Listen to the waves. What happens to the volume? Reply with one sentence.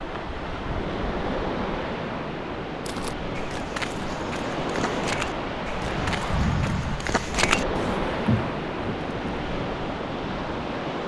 The volume of the waves stays about the same.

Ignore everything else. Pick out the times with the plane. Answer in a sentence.
The plane can't be heard in this clip.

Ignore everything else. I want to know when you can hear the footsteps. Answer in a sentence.
You can hear the footsteps from 2.9 to 9.2 s.